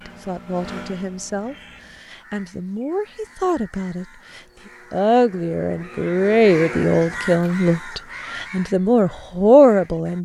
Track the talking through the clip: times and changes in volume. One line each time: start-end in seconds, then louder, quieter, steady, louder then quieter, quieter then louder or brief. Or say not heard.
0.1-10.1 louder.